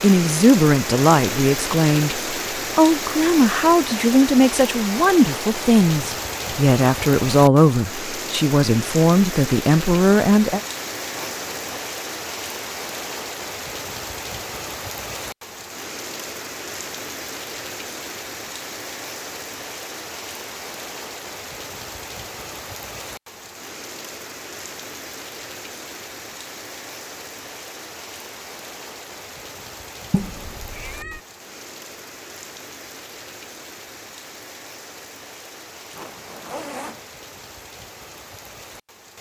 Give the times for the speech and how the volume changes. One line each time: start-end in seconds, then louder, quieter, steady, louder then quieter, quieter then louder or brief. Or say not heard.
0.0-10.6 steady.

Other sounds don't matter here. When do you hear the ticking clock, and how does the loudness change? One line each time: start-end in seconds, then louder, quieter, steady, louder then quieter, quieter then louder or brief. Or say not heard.
not heard.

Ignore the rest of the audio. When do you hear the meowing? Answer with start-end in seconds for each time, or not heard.
30.1-31.2.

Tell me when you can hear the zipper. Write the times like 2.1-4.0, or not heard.
11.1-11.8, 35.9-37.1.